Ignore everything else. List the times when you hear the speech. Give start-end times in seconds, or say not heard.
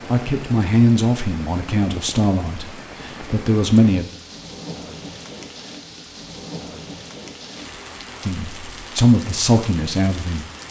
0.1-4.0, 8.2-10.4.